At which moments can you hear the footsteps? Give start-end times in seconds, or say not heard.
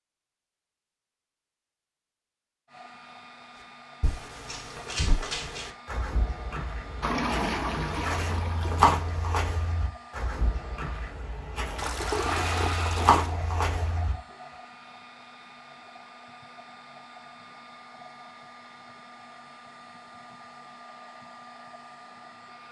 4.0-14.2.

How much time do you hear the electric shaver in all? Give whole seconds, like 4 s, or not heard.
not heard.